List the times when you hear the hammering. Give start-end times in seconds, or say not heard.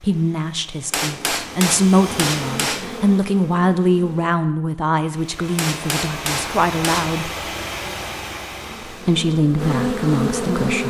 0.9-2.9, 5.5-7.1.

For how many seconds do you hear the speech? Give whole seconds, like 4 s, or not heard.
9 s.